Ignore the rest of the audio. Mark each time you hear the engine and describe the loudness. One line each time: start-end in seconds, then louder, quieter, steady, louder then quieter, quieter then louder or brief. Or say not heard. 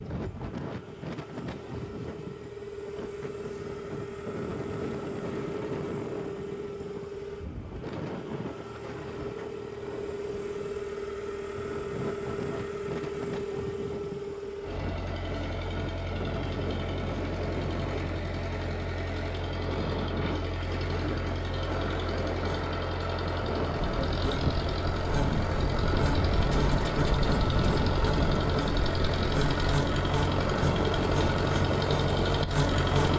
0.0-33.1 louder.